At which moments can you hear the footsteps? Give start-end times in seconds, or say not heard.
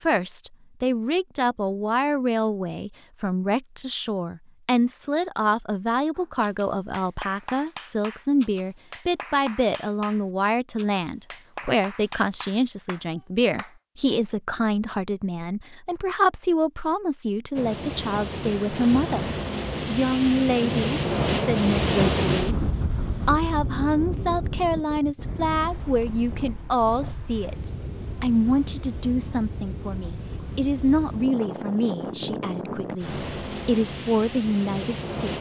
not heard.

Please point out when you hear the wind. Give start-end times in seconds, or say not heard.
17.6-35.3.